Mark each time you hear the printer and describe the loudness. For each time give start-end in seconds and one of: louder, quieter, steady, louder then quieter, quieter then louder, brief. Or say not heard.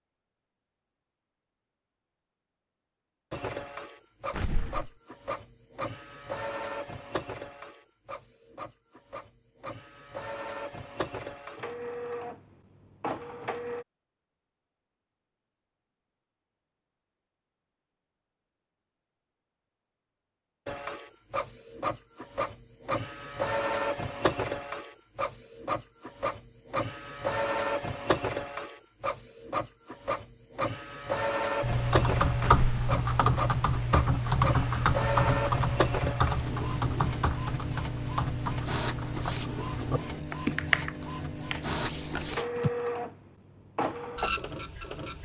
3.3-13.8 quieter then louder
20.6-45.2 steady.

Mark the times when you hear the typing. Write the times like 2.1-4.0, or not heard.
31.6-42.7.